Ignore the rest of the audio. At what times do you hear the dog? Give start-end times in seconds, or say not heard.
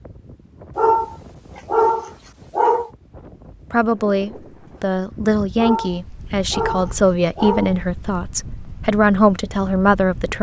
0.8-2.9, 5.5-7.8.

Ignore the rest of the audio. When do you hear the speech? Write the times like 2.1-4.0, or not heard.
3.7-10.3.